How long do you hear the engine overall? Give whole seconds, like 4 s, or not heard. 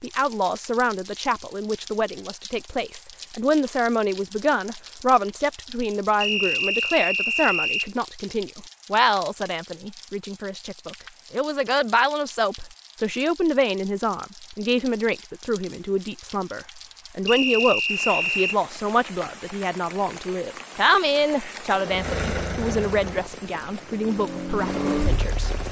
4 s.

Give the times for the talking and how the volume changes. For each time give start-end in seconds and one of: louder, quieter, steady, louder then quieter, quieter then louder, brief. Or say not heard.
0.0-25.5 steady.